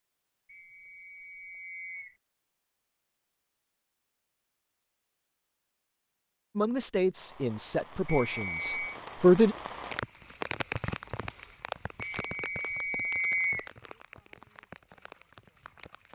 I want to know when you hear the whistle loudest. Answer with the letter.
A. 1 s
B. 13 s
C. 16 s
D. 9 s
B.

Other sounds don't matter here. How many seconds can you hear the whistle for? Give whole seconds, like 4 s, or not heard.
4 s.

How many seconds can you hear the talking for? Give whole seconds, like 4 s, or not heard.
3 s.